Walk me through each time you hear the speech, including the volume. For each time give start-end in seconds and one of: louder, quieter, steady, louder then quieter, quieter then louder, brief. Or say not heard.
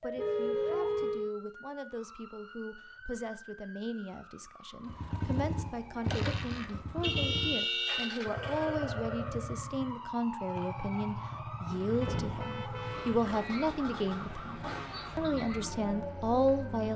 0.0-16.9 louder.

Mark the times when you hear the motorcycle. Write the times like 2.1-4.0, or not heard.
4.8-16.9.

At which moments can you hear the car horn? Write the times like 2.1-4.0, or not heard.
0.1-1.3, 7.0-8.2, 12.0-13.2.